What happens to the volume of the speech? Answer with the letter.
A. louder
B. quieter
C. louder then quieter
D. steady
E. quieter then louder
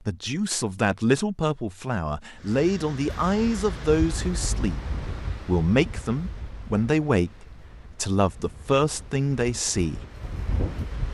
D.